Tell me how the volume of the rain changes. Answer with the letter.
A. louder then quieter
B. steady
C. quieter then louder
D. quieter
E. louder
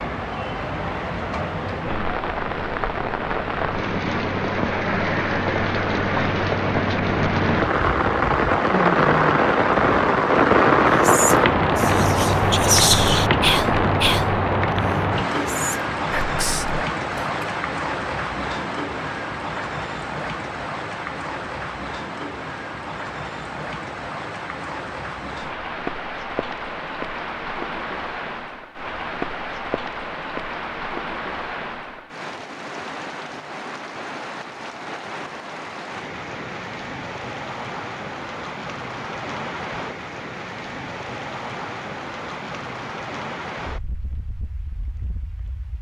D.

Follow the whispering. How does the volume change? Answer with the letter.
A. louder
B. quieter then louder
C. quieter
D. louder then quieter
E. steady
D.